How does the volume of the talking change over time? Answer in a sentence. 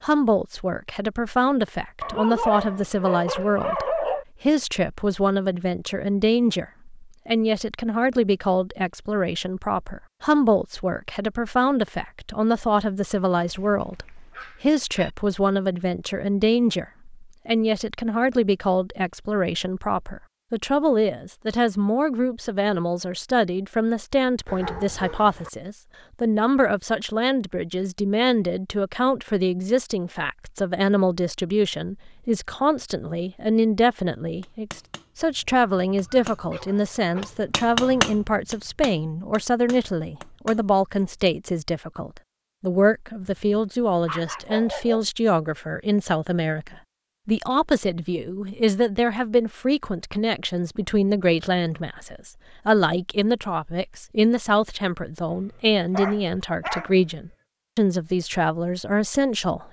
The loudness of the talking stays about the same.